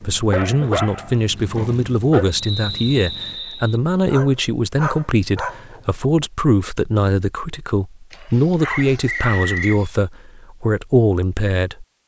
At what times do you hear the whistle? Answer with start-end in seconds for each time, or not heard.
2.3-3.8, 8.7-9.8.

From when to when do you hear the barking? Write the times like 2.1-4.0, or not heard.
0.3-2.4, 4.0-6.0, 8.1-9.9.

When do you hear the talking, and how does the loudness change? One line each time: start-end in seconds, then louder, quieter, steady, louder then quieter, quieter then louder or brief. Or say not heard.
0.0-11.8 steady.